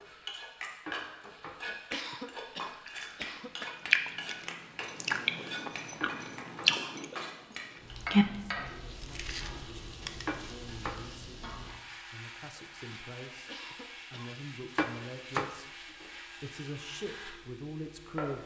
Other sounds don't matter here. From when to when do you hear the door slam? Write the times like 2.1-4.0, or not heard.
not heard.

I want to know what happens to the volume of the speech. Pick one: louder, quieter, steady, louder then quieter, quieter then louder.
louder.